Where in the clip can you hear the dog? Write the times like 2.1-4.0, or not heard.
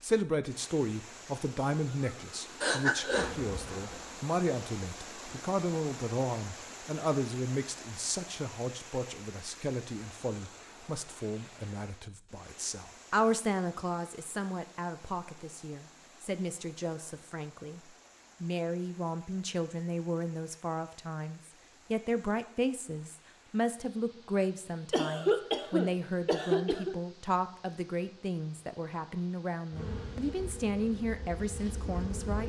not heard.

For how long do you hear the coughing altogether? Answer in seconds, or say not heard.
3 s.